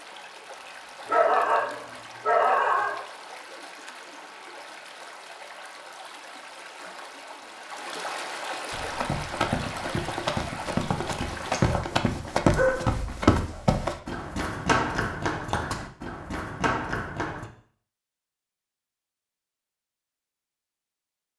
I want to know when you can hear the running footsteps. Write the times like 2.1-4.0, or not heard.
8.7-17.5.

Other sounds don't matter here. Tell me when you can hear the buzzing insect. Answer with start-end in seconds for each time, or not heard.
not heard.